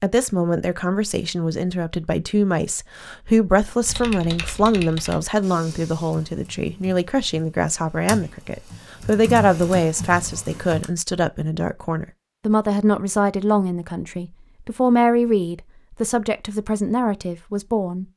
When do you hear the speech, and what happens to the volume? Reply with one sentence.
The speech can be heard from 0.0 to 18.1 s, at a steady volume.